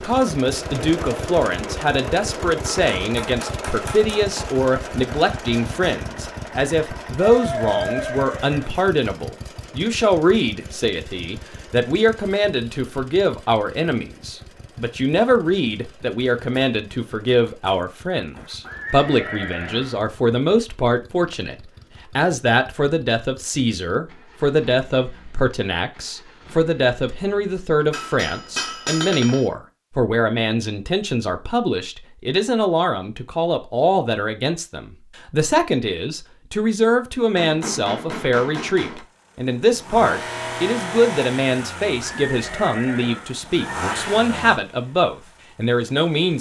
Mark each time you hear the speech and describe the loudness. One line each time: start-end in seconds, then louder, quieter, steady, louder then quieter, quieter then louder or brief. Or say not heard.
0.0-21.6 steady
22.1-46.3 steady.